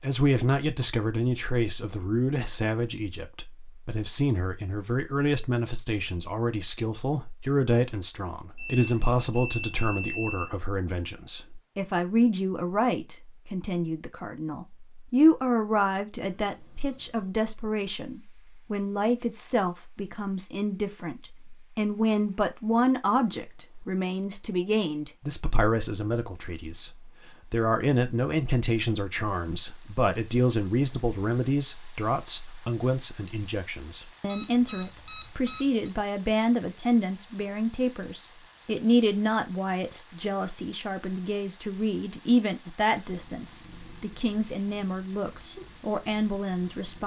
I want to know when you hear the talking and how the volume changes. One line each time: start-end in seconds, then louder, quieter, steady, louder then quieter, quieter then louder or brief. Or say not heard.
0.0-47.0 steady.